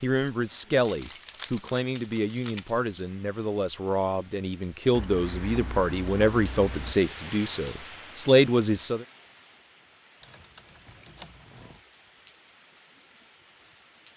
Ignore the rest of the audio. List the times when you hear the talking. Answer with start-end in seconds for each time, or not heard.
0.0-9.1.